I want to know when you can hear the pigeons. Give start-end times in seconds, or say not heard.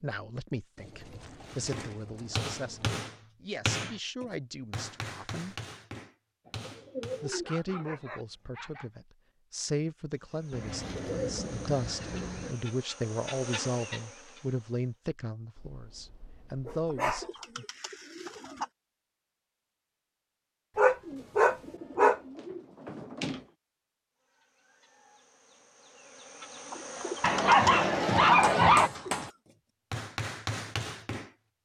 0.8-3.0, 6.5-8.2, 10.5-12.6, 16.9-18.7, 21.0-23.4, 26.7-29.3.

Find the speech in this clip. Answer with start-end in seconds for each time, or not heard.
0.0-5.5, 7.2-17.6.